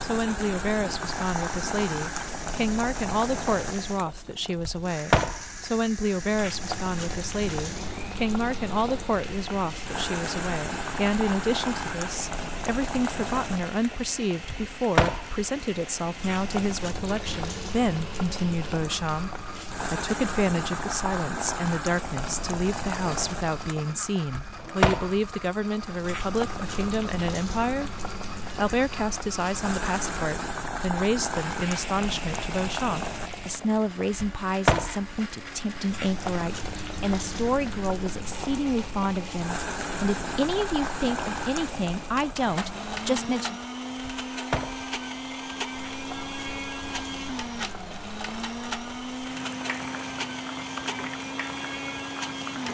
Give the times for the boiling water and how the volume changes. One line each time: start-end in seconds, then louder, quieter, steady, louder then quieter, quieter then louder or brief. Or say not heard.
0.0-52.7 quieter.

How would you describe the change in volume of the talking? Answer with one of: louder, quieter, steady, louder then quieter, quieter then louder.
steady.